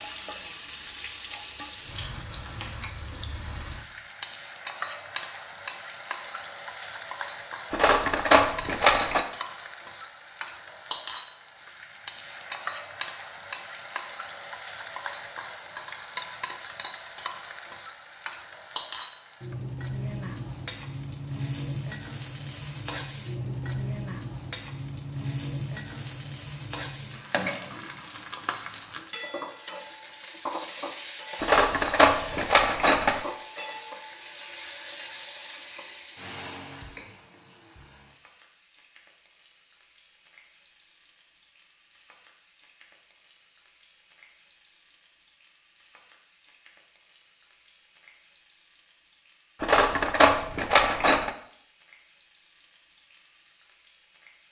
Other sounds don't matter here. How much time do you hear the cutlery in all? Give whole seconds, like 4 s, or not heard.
5 s.